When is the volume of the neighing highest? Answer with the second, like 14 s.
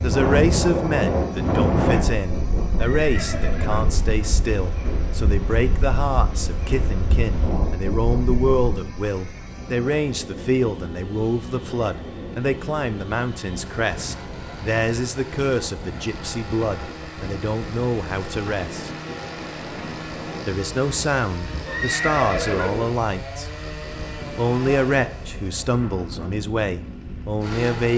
22 s.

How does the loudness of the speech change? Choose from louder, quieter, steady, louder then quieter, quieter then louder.
steady.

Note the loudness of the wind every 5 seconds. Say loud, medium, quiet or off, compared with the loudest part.
loud, medium, quiet, quiet, quiet, quiet.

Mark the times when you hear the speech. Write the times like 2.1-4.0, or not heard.
0.0-18.9, 20.4-23.5, 24.4-27.9.